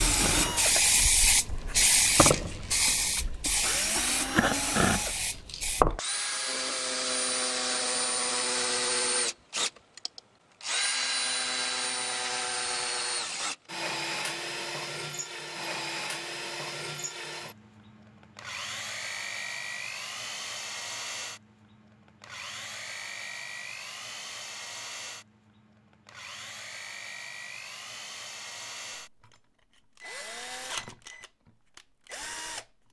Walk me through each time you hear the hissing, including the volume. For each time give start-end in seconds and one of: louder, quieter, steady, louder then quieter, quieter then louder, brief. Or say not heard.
0.0-5.8 quieter.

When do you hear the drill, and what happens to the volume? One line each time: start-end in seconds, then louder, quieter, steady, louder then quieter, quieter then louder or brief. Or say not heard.
0.0-32.8 quieter.